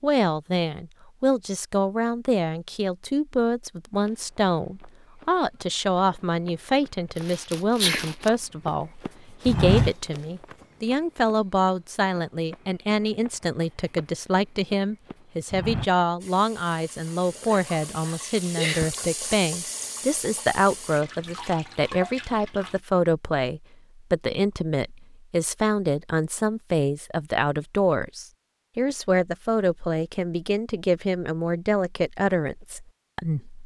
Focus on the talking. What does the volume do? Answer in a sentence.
The volume of the talking stays about the same.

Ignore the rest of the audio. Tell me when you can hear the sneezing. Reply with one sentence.
You can hear the sneezing from 7.2 to 8.3 s and from 17.5 to 18.9 s.